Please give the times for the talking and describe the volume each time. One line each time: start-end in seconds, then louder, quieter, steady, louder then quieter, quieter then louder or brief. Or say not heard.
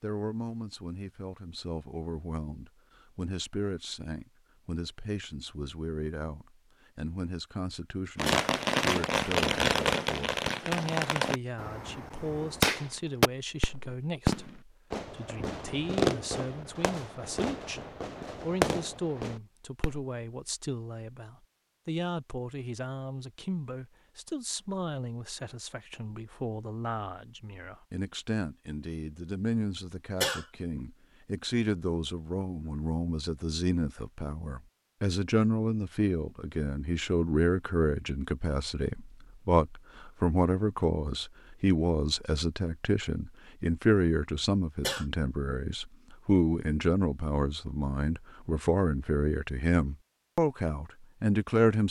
0.0-17.8 steady
18.4-51.8 louder.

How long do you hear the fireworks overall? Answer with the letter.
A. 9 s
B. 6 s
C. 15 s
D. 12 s
D.